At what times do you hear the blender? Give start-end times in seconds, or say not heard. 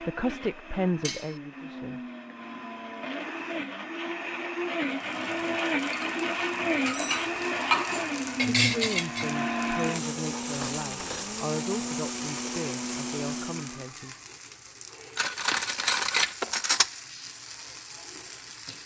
0.0-13.9.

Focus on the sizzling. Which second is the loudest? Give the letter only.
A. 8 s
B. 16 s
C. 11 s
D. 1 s
A.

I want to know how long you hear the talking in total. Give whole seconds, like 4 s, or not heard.
8 s.